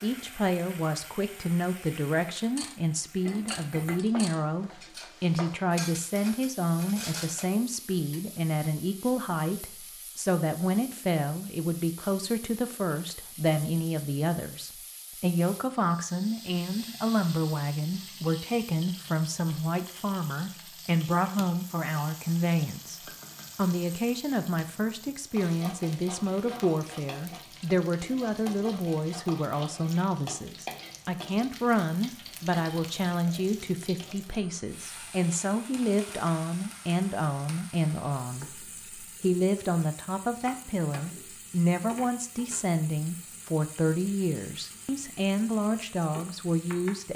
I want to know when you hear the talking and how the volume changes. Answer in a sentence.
You can hear the talking from 0.0 to 47.1 s, at a steady volume.